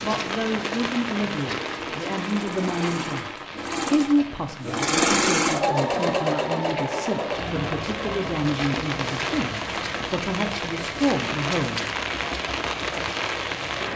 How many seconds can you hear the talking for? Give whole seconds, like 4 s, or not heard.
12 s.